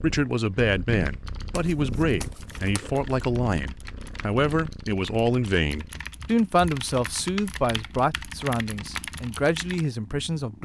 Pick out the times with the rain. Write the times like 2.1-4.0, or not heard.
not heard.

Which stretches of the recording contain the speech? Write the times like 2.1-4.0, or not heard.
0.0-10.6.